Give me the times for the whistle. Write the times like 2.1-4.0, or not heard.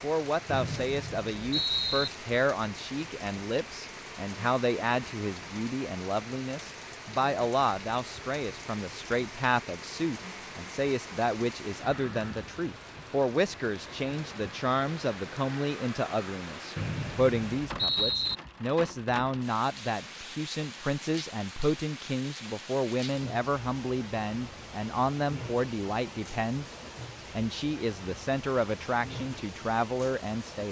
0.5-2.1, 16.8-18.4.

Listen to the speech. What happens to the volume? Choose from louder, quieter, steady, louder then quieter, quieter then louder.
steady.